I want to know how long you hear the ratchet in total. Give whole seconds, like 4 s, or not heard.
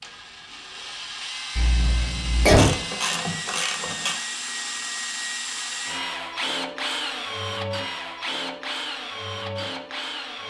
2 s.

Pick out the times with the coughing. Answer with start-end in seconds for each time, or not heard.
1.6-2.7.